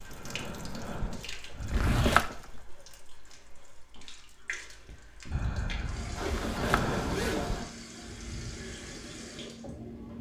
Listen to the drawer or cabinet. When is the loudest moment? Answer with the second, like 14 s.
2 s.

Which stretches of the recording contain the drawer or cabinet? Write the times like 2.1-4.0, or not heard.
1.6-2.5, 6.2-7.0.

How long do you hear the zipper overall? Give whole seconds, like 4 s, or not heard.
2 s.